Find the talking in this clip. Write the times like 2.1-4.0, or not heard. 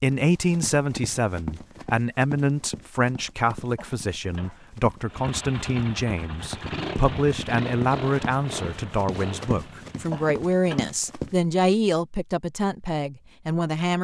0.0-14.0.